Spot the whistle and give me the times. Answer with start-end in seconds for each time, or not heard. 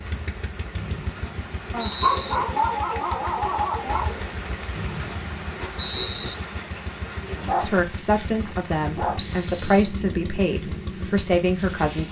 0.8-2.4, 4.8-6.3, 9.2-9.9.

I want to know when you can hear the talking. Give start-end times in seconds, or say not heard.
7.5-12.0.